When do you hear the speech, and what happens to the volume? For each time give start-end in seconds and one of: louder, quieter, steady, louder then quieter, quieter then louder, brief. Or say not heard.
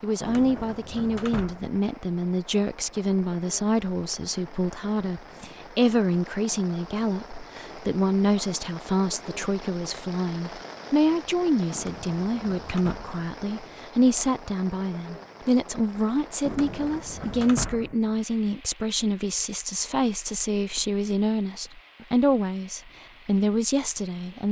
0.0-24.4 steady.